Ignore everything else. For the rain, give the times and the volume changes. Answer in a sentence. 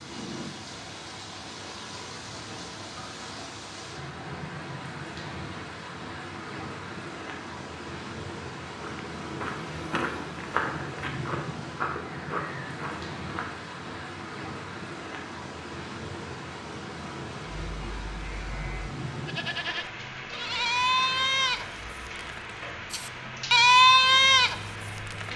You can hear the rain from 0.0 to 25.3 s, at a steady volume.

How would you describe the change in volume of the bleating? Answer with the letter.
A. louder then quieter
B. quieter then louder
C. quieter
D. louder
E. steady
D.